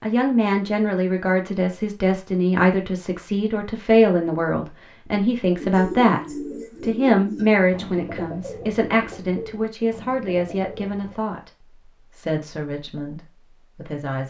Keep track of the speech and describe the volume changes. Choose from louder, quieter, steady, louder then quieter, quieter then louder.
quieter.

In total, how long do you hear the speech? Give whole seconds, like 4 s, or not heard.
14 s.